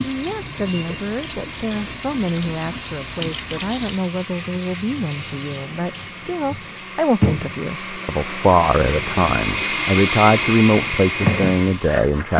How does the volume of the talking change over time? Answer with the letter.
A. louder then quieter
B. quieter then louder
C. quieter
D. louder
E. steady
D.